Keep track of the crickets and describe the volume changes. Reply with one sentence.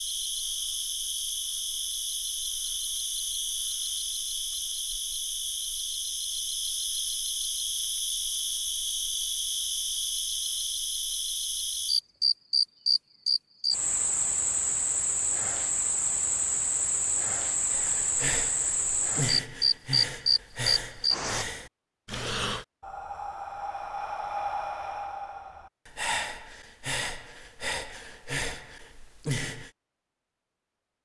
The volume of the crickets goes up.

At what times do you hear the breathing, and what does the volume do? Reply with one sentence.
You can hear the breathing from 17.7 to 29.7 s, at a steady volume.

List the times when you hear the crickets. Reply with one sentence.
You can hear the crickets from 0.0 to 21.4 s.